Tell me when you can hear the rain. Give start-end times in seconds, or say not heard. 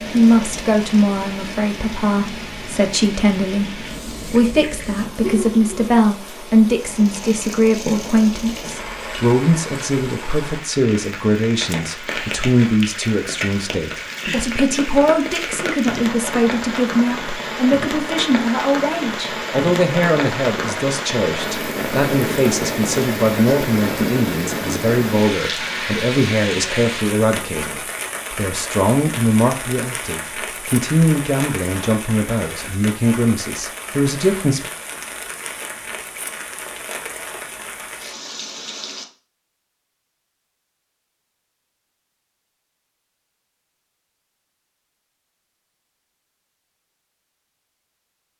0.0-39.0.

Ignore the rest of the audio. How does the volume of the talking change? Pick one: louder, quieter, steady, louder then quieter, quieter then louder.
steady.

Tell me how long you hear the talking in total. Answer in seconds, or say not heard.
35 s.